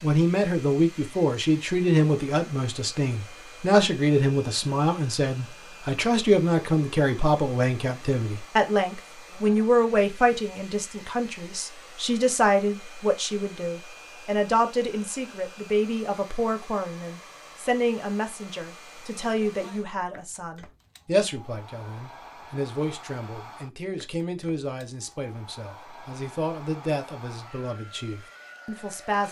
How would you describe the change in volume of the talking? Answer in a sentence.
The volume of the talking goes down.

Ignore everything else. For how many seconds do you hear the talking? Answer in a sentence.
You can hear the talking for 29 seconds altogether.